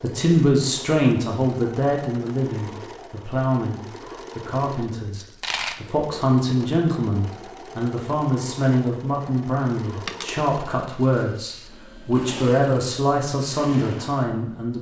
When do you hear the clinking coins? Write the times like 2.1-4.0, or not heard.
5.1-5.8, 10.1-11.7.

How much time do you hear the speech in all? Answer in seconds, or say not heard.
15 s.